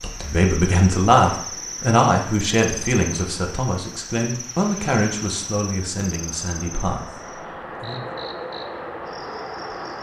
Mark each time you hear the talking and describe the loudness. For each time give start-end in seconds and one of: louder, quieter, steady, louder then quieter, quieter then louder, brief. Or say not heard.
0.0-8.2 quieter.